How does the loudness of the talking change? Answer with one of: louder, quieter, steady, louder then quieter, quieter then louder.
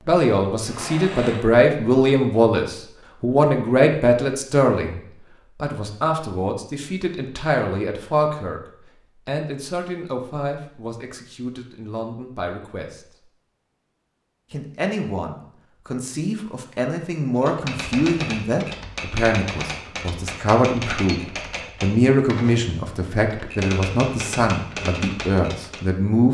quieter then louder.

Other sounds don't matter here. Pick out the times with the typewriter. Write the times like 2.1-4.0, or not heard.
17.4-25.9.